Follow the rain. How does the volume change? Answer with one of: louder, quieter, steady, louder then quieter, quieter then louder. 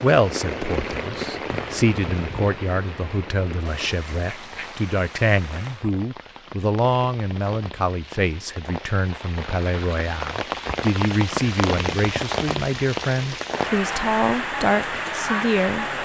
quieter then louder.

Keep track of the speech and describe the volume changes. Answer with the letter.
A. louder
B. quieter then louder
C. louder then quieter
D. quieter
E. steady
E.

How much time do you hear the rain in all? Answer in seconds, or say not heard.
16 s.